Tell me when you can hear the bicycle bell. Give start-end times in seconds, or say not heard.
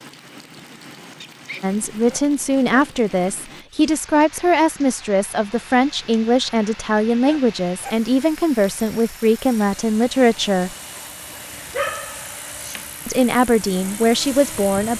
not heard.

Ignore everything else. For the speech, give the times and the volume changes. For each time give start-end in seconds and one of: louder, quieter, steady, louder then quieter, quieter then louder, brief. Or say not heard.
1.6-10.8 steady
13.1-14.9 brief.